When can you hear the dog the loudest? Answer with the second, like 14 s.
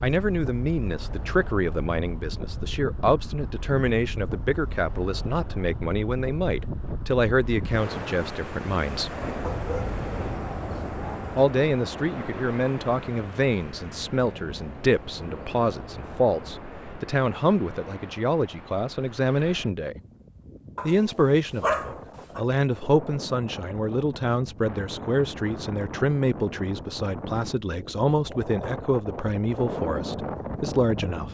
22 s.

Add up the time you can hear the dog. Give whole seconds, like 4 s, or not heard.
4 s.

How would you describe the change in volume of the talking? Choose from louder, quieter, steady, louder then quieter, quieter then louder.
steady.